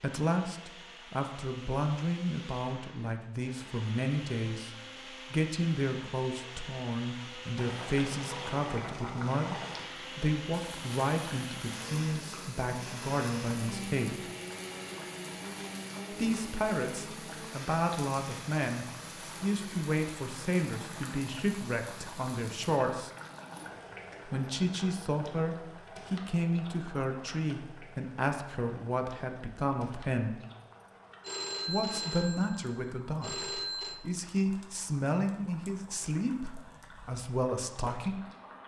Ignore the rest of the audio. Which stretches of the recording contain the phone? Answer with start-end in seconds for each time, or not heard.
31.2-34.0.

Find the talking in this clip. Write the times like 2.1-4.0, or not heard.
0.0-4.7, 5.3-14.3, 16.1-23.1, 24.2-30.4, 31.6-38.2.